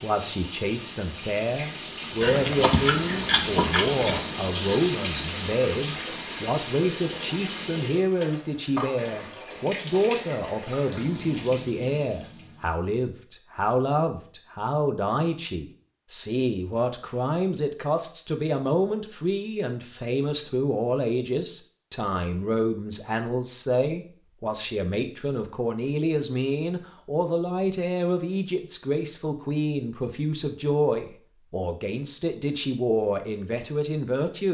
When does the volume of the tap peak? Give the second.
5 s.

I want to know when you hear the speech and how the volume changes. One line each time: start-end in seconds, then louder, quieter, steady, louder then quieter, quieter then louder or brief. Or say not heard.
0.0-34.5 steady.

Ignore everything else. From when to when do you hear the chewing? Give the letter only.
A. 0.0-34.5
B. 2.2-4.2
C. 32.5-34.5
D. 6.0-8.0
B.